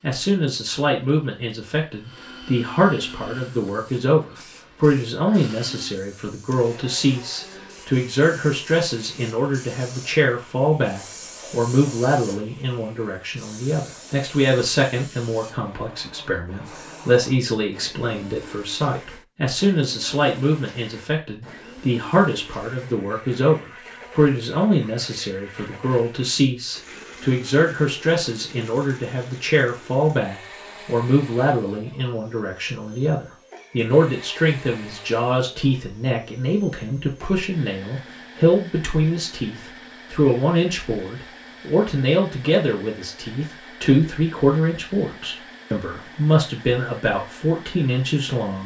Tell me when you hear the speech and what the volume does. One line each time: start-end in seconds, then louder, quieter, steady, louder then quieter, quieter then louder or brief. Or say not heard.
0.0-48.6 steady.